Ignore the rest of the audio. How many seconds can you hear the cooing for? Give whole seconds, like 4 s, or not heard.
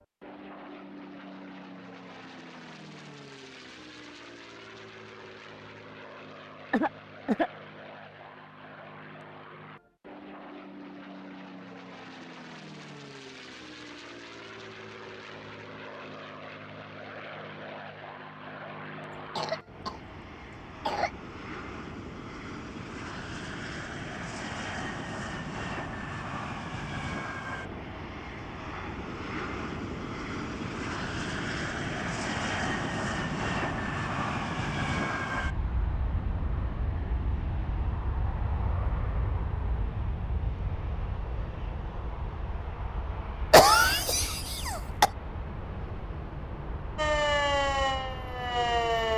not heard.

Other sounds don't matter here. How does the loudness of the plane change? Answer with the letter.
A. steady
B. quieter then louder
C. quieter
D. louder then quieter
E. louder
D.